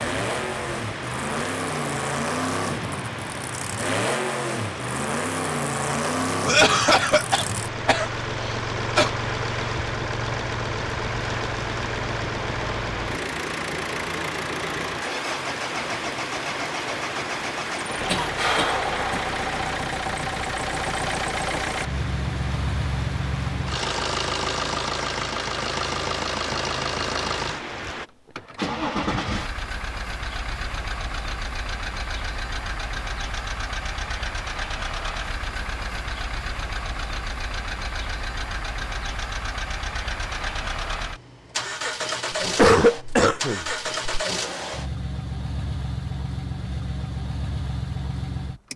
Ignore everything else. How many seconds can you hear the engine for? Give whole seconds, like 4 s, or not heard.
49 s.